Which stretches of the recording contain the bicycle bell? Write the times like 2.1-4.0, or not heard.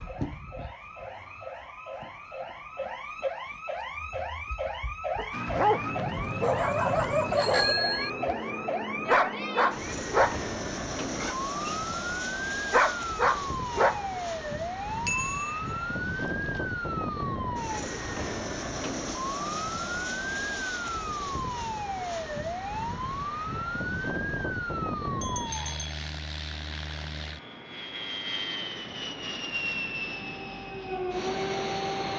7.3-8.1, 15.1-15.8, 25.2-25.9.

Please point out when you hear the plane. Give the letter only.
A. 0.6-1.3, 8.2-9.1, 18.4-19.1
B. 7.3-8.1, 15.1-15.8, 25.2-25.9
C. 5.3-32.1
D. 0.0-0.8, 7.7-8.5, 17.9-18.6
C.